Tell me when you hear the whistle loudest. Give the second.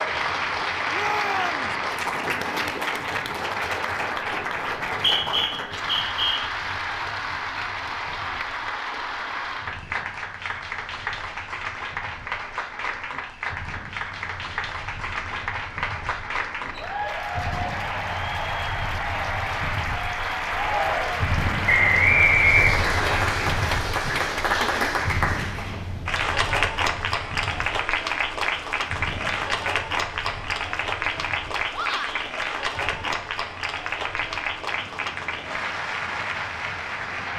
22 s.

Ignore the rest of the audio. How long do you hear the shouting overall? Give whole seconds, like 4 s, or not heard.
2 s.